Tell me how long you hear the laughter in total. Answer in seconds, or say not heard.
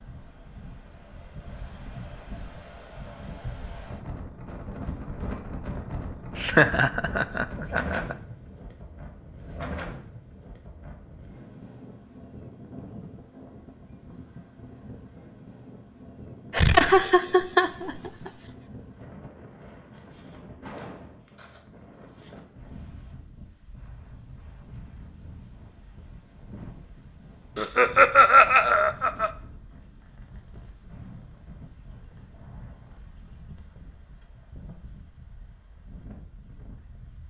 5 s.